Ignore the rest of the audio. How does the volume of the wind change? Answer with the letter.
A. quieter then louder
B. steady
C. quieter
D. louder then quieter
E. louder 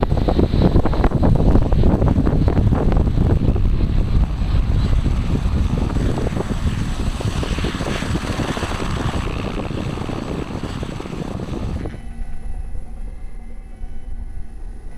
C.